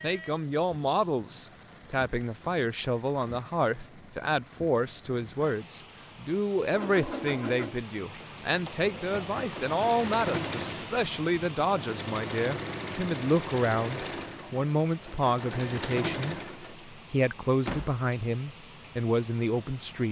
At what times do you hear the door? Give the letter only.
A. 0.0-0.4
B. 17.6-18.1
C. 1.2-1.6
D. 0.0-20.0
B.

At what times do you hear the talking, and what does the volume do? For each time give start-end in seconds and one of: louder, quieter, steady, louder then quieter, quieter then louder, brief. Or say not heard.
0.0-20.0 steady.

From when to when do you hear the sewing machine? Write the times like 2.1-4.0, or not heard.
6.7-16.9.